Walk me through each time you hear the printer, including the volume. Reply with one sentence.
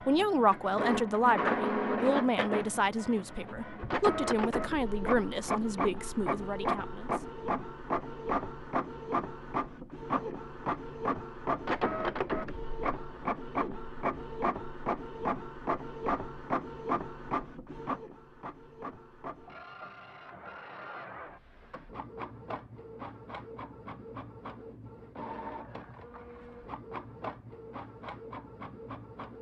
You can hear the printer from 0.0 to 29.3 s, getting quieter.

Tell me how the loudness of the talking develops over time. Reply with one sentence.
The volume of the talking goes down.